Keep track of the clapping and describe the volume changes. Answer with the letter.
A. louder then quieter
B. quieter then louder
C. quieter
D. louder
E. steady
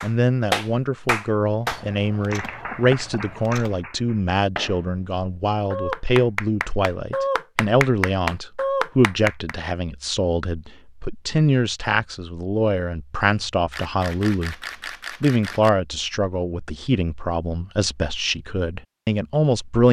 B.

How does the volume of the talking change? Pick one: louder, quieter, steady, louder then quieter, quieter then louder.
steady.